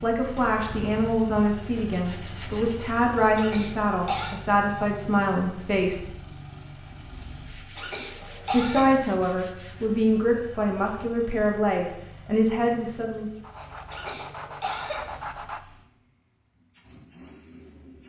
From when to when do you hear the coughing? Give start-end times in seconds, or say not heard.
3.4-4.3, 7.8-8.9, 13.9-15.1.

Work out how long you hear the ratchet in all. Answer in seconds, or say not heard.
not heard.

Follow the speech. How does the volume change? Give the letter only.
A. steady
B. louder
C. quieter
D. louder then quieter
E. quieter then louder
A.